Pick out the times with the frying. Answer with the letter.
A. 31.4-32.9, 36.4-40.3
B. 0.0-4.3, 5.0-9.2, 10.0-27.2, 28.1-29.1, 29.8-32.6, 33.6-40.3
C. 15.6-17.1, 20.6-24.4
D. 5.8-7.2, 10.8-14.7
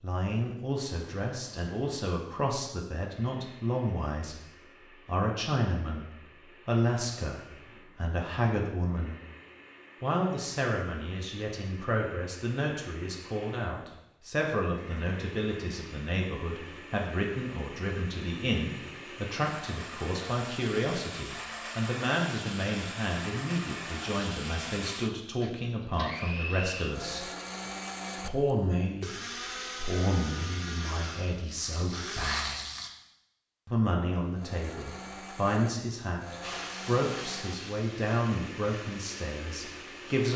A.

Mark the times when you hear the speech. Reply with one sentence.
You can hear the speech from 0.0 to 4.3 s, from 5.0 to 9.2 s, from 10.0 to 27.2 s, from 28.1 to 29.1 s, from 29.8 to 32.6 s and from 33.6 to 40.3 s.